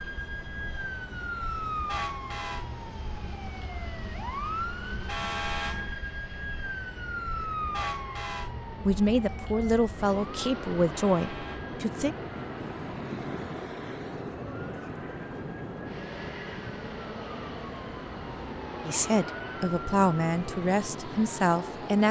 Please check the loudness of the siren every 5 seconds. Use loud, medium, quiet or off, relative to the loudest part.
loud, loud, medium, medium, medium.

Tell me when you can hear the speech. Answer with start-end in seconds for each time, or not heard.
8.8-12.2, 18.9-22.0.